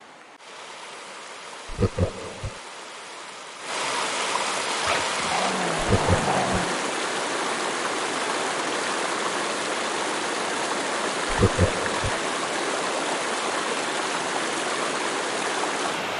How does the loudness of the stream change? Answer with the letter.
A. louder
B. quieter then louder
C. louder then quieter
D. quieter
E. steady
A.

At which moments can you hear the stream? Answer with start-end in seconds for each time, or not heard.
0.0-16.1.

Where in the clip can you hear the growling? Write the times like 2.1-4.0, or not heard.
4.8-6.8.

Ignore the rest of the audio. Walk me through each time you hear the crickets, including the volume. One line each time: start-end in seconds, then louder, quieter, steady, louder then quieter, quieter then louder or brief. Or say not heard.
not heard.